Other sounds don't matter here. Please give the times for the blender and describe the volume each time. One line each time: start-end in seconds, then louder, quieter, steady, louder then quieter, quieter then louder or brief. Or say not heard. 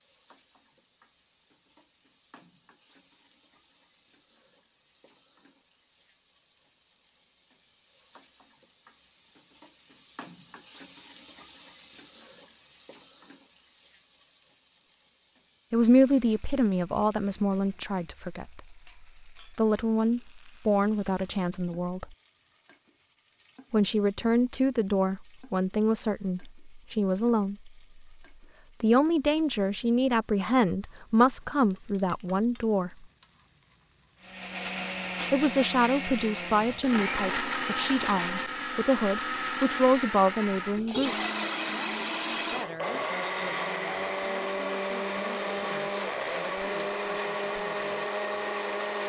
34.2-49.0 steady.